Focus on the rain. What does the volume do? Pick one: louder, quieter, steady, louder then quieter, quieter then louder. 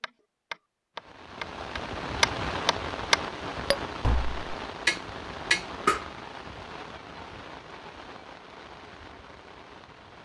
quieter.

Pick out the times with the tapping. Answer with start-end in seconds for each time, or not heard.
0.0-6.0.